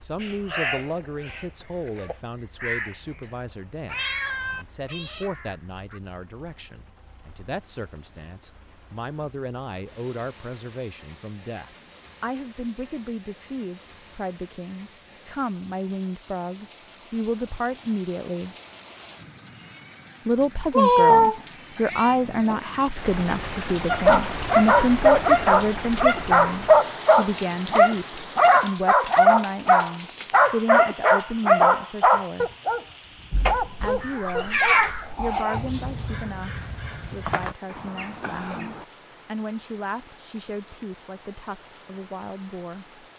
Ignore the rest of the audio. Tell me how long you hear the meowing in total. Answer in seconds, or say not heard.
5 s.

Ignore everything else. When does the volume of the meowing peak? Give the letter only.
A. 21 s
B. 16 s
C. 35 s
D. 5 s
A.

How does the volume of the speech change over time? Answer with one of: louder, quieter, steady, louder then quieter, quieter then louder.
louder then quieter.